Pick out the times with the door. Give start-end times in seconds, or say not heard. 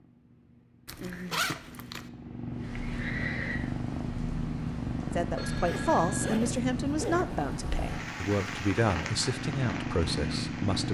not heard.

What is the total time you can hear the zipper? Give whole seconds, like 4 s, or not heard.
3 s.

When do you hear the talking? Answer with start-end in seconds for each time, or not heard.
5.1-10.8.